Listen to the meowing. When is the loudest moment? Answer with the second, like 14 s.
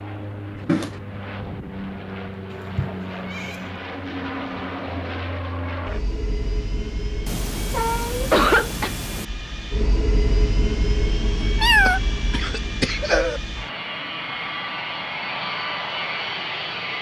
12 s.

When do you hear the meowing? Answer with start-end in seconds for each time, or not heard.
2.5-3.6, 7.2-9.2, 11.6-12.4.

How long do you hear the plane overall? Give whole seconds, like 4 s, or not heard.
17 s.